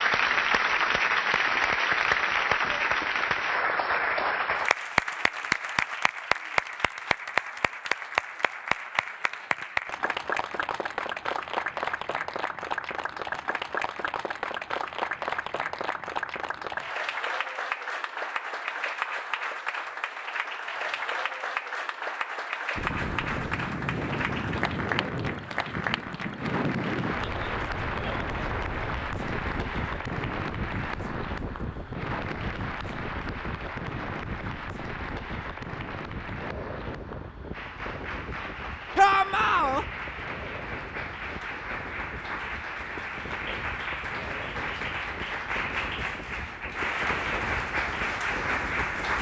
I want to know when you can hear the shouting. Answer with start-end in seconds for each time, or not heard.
39.0-39.9.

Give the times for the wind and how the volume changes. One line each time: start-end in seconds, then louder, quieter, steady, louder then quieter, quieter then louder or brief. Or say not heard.
22.8-49.1 quieter.